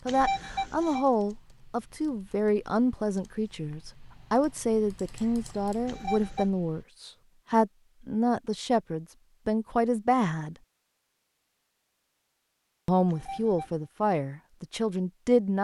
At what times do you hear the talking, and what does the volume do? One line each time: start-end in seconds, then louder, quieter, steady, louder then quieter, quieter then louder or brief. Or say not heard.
0.1-10.6 steady
12.8-15.5 brief.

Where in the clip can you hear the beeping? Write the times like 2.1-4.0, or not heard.
0.1-1.1, 5.8-6.5, 13.1-13.8.